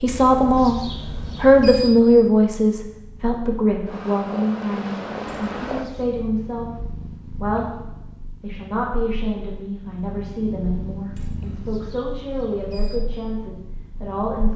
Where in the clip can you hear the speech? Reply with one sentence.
The speech can be heard from 0.0 to 0.8 s, from 1.4 to 7.7 s and from 8.4 to 14.5 s.